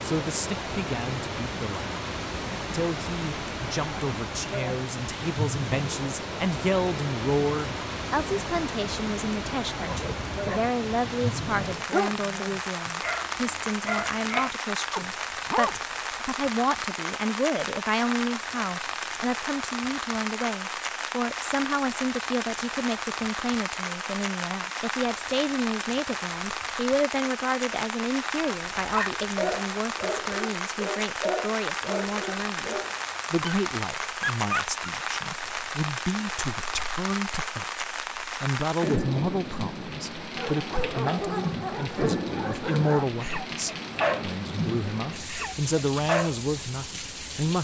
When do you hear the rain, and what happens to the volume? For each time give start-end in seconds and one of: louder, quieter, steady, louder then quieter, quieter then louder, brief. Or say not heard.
0.0-47.5 steady.